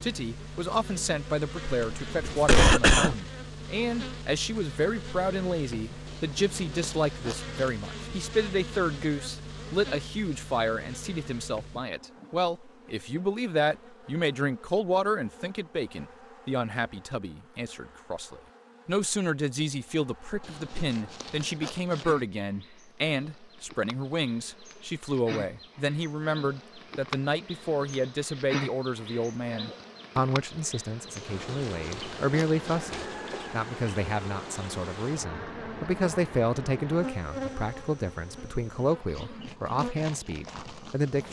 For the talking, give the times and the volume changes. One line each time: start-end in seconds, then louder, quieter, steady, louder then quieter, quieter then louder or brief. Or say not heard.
0.0-41.2 steady.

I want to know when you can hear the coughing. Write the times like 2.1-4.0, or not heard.
1.7-3.1.